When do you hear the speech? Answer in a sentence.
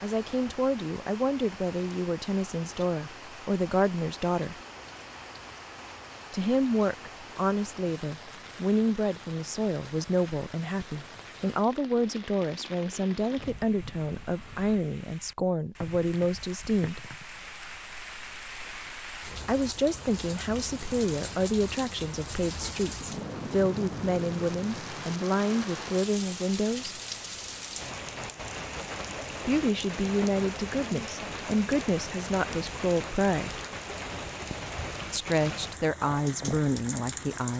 The speech can be heard from 0.0 to 4.5 s, from 6.3 to 17.0 s, from 19.4 to 27.0 s, from 29.4 to 33.6 s and from 35.1 to 37.5 s.